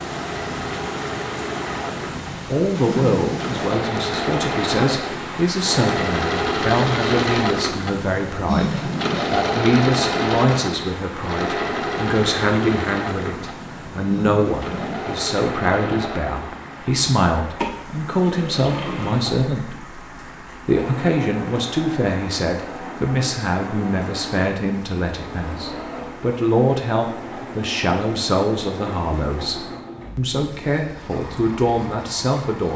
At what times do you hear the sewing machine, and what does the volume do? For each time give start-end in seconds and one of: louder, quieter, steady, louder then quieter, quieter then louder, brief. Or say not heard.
0.0-32.7 quieter.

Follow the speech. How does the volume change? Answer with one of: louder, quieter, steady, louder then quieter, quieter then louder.
steady.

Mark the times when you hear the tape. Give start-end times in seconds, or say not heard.
not heard.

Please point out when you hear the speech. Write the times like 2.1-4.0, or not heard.
2.5-32.7.